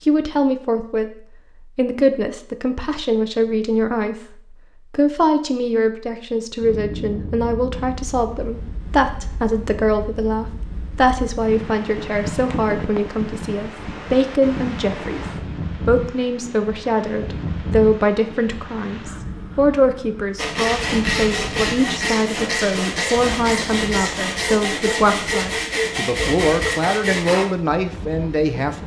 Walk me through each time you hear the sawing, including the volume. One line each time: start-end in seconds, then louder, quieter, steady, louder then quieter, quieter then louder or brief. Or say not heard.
20.4-27.4 steady.